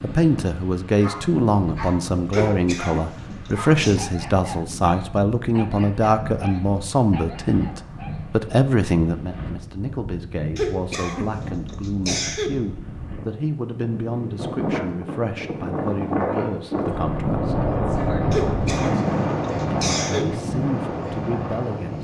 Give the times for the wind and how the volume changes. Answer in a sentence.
The wind can be heard from 0.0 to 21.9 s, getting louder.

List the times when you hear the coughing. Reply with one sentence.
The coughing can be heard from 2.3 to 4.0 s, from 10.6 to 12.5 s and from 18.3 to 20.2 s.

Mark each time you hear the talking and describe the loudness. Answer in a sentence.
You can hear the talking from 0.0 to 17.6 s, getting quieter; and briefly from 19.7 to 21.9 s.